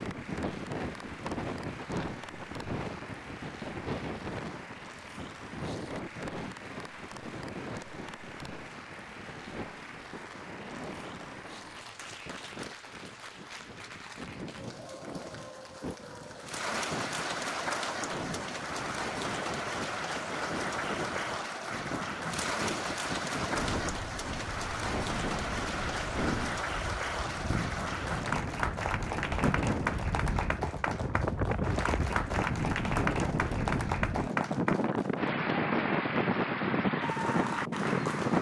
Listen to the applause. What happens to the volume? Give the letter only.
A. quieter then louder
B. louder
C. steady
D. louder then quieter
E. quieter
B.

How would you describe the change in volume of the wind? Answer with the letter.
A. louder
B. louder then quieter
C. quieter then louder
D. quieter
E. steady
C.